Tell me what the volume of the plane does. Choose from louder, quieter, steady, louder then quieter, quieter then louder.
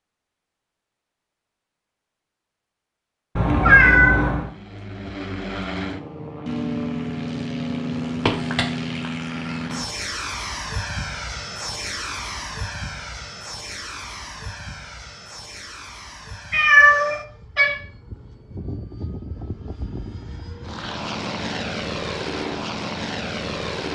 quieter then louder.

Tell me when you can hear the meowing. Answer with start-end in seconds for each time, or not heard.
3.4-4.5, 8.2-8.7, 16.5-17.8.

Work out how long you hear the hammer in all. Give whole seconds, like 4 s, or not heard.
not heard.